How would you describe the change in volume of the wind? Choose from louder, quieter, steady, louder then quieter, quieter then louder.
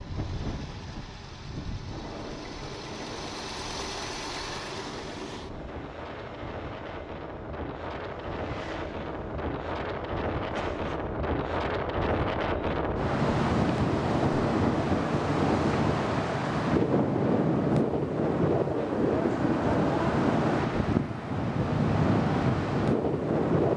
louder.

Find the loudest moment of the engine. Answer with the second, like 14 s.
4 s.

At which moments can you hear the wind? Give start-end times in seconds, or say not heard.
0.0-23.7.